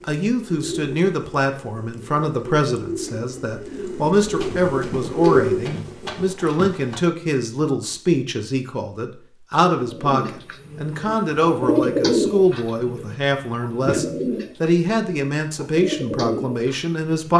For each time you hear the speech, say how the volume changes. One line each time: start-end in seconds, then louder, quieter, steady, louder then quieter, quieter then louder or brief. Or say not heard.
0.0-17.3 steady.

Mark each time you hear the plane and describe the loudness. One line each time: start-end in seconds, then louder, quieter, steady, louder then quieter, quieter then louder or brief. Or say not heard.
not heard.